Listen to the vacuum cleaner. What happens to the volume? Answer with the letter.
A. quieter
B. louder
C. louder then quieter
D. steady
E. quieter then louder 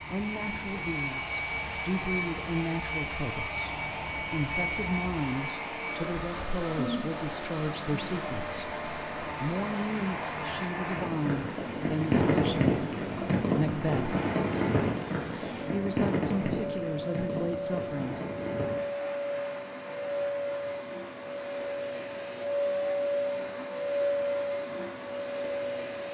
E.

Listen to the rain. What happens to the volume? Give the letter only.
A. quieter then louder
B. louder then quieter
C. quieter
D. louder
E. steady
B.